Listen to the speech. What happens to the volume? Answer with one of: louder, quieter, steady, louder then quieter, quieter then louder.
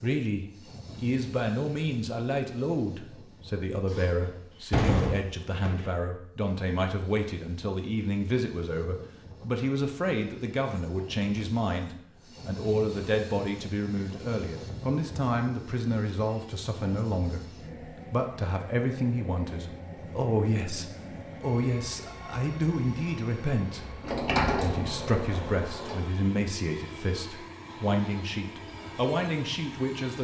steady.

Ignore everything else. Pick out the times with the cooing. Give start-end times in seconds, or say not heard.
not heard.